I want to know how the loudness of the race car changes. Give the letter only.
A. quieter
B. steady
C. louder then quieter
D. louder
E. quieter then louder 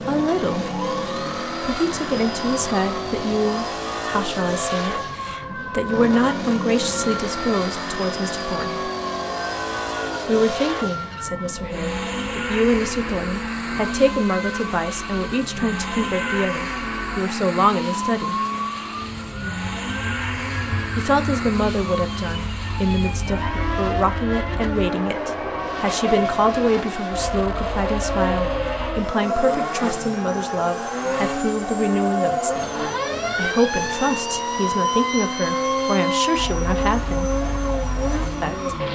B.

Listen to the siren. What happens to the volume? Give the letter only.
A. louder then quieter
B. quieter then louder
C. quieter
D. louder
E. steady
D.